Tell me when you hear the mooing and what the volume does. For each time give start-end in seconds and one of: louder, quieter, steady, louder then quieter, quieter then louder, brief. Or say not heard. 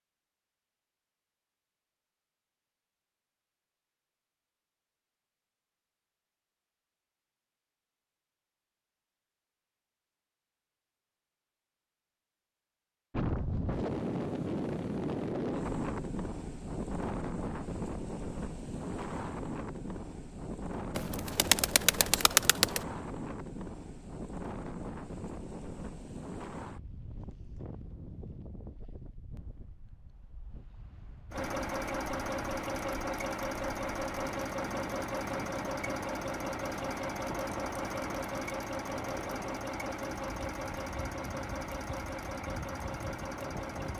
not heard.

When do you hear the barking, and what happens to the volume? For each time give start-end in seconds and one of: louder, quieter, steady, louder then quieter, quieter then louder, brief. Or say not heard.
not heard.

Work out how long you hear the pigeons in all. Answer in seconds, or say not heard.
2 s.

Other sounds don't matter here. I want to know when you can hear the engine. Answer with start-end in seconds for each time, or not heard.
31.3-43.9.